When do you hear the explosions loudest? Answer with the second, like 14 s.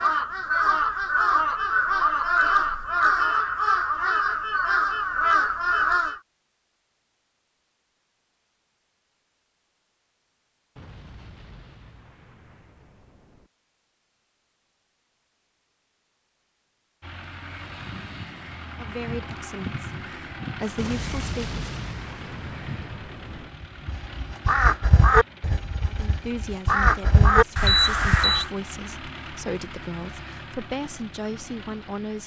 21 s.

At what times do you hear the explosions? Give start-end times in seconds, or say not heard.
10.8-13.5, 20.8-23.5.